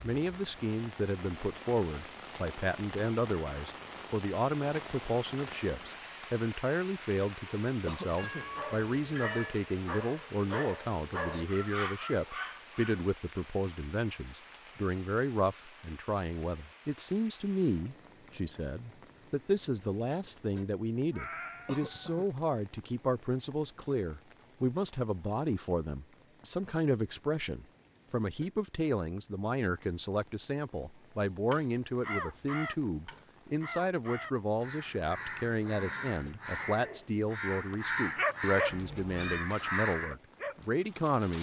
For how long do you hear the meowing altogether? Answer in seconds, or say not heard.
3 s.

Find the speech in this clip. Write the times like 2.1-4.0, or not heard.
0.0-41.3.